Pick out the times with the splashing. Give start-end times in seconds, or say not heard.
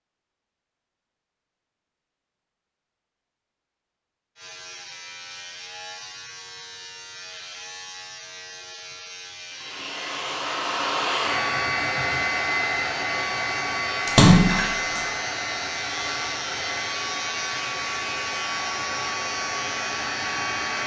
14.1-15.1.